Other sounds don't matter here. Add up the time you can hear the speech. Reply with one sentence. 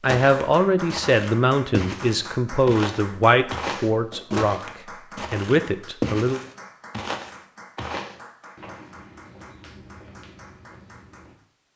The speech can be heard for 6 seconds in total.